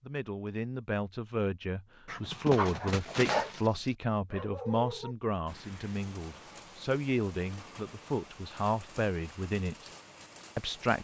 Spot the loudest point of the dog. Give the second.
3 s.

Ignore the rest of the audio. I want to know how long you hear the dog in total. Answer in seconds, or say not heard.
3 s.